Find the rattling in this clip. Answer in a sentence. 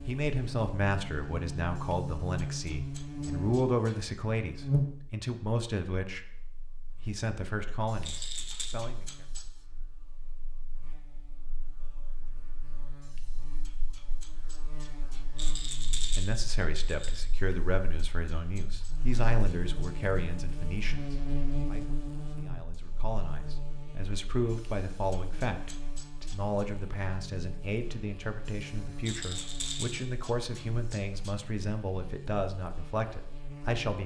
You can hear the rattling from 8.1 to 8.8 s, from 15.3 to 17.2 s and from 29.1 to 30.1 s.